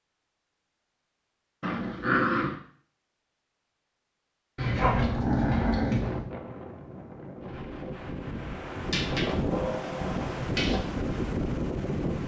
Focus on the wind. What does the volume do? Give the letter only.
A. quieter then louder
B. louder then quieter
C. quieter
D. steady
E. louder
E.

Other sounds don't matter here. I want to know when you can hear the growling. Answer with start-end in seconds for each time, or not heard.
1.6-2.5, 4.5-6.3, 8.8-10.8.